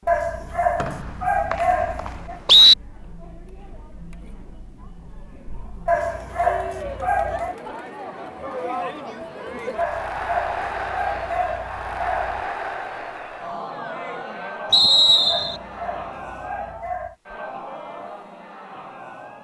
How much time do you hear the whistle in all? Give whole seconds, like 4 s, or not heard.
3 s.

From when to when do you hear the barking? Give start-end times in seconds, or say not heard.
0.1-2.4, 5.8-7.5, 9.8-12.5, 15.2-17.1.